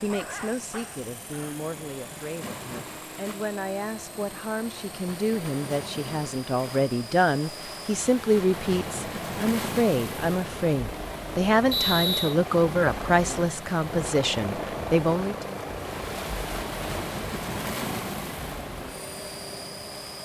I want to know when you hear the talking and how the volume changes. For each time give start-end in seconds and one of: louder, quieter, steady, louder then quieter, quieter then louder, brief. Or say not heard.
0.0-15.4 louder.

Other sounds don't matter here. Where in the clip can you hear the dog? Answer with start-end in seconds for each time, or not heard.
0.0-1.6.